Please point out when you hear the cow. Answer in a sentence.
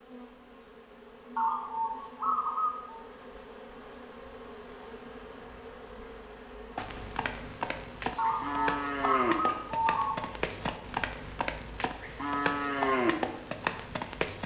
You can hear the cow from 6.8 to 14.4 s.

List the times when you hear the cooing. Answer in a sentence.
You can hear the cooing from 1.4 to 3.0 s and from 8.2 to 10.2 s.